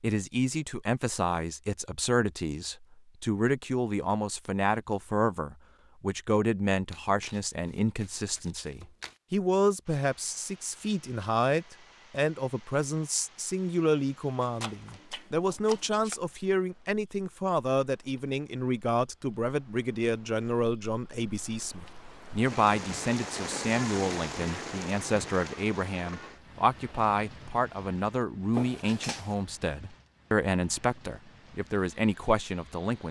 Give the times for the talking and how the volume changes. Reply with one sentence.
The talking can be heard from 0.0 to 33.0 s, at a steady volume.